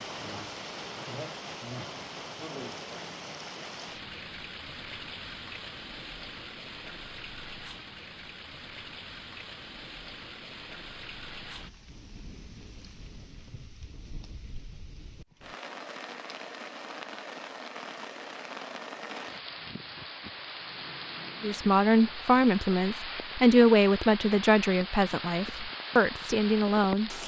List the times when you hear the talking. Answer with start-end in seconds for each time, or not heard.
21.4-27.2.